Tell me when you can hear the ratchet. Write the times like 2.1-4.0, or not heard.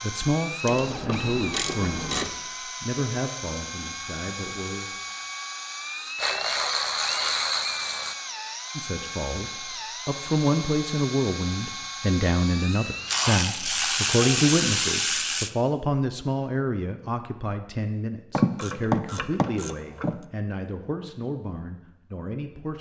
0.7-2.3, 6.2-8.2, 13.1-15.5, 18.3-20.1.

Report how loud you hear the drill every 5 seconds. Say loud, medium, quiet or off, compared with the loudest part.
loud, loud, loud, off, off.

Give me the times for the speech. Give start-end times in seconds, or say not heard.
0.0-5.0, 8.8-22.7.